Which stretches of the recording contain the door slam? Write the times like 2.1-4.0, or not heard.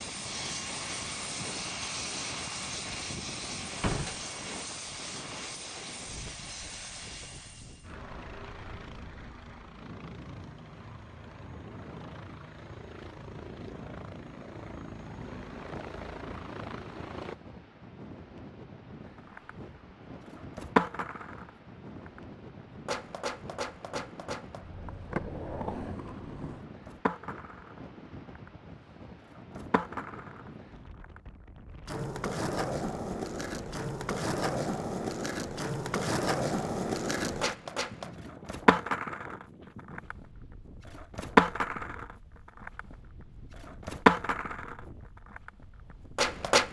3.8-4.2.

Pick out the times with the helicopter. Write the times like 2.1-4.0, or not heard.
0.0-17.4.